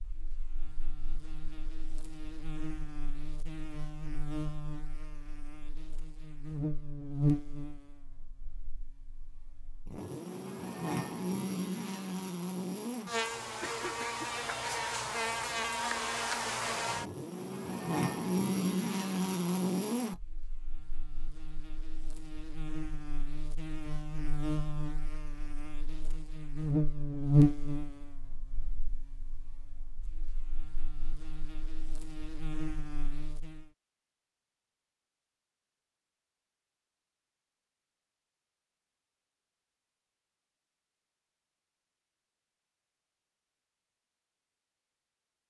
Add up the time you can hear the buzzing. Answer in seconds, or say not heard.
34 s.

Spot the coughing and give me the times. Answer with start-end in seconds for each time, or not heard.
13.6-14.3.